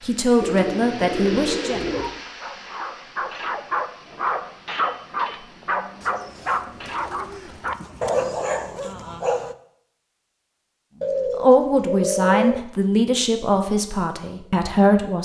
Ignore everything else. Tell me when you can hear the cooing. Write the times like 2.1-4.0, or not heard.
0.4-2.2, 6.0-8.4, 11.0-12.6.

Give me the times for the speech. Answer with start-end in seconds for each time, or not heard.
0.0-1.9, 11.3-15.1.